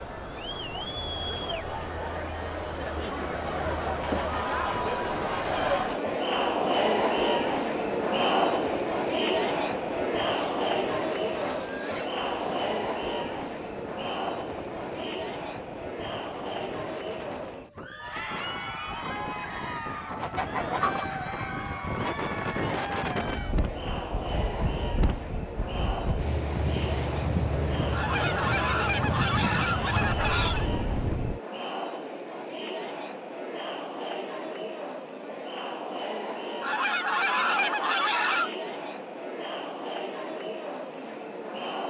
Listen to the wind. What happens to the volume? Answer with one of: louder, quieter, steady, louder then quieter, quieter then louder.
louder.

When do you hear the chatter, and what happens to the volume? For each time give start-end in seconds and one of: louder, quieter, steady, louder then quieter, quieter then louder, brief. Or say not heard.
0.0-41.8 quieter.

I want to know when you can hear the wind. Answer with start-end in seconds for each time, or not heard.
0.0-31.4.